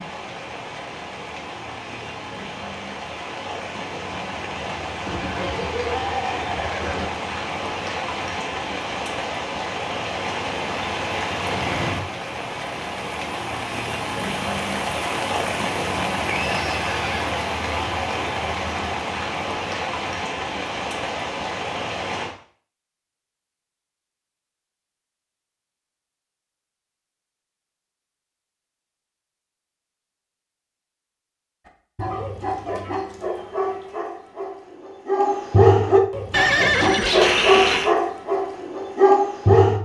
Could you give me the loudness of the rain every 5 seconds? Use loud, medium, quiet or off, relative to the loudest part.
medium, loud, loud, loud, loud, off, off, off.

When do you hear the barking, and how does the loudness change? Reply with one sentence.
You can hear the barking from 31.9 to 39.7 s, getting louder.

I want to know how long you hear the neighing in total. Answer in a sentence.
You can hear the neighing for 5 seconds altogether.